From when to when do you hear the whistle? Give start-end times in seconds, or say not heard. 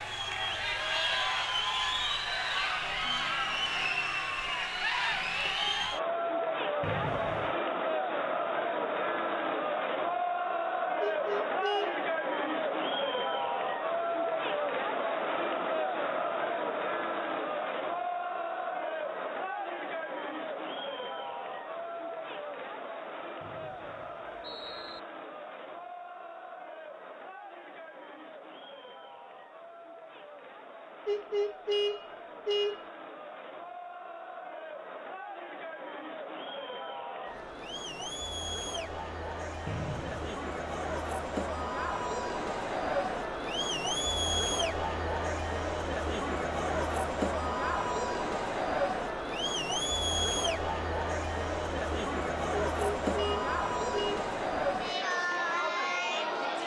6.8-7.5, 23.4-25.0, 39.6-40.4.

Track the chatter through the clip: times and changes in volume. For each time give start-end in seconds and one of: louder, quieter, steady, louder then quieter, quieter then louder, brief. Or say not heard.
0.0-56.6 quieter then louder.